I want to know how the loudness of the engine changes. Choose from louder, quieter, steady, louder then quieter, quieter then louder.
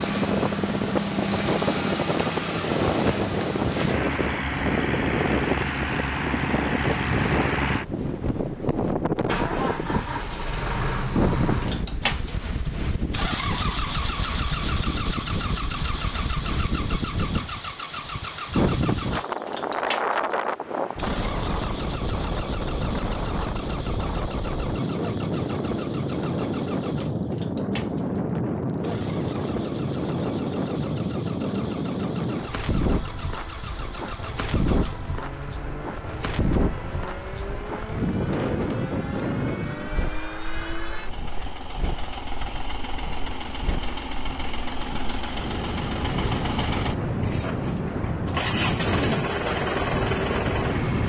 quieter then louder.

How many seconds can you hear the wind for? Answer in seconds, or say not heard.
51 s.